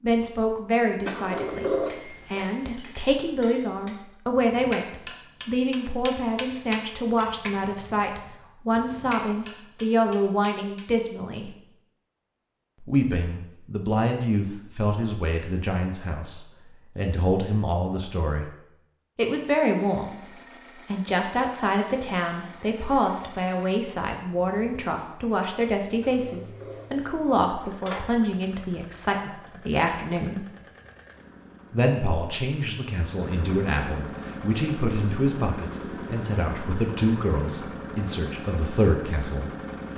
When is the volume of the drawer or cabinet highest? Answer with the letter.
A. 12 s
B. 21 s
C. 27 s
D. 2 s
D.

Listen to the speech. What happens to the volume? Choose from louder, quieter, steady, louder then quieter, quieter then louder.
steady.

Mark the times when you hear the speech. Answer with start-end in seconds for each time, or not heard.
0.0-11.6, 12.8-18.5, 19.1-30.4, 31.7-39.5.